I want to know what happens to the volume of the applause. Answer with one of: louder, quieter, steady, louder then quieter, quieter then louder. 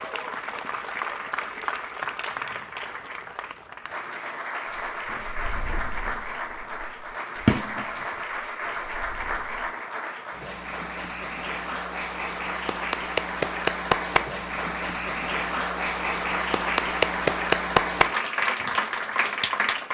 louder.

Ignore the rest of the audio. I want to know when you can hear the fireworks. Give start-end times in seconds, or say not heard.
4.7-9.7.